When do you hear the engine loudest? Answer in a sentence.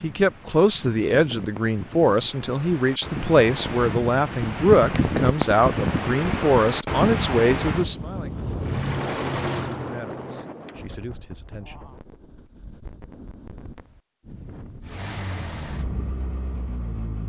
The loudest moment of the engine is at 9 seconds.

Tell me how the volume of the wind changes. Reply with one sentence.
The volume of the wind goes up, then down.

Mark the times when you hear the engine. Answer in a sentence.
The engine can be heard from 8.6 to 10.5 s and from 14.8 to 17.2 s.